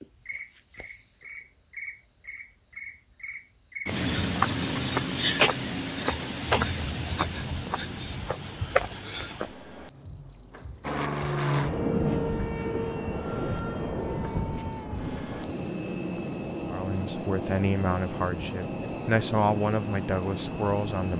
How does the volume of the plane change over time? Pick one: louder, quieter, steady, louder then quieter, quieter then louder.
quieter.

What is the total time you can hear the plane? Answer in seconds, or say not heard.
10 s.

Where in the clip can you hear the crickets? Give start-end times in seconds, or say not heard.
0.0-15.8.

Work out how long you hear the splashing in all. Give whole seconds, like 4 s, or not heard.
not heard.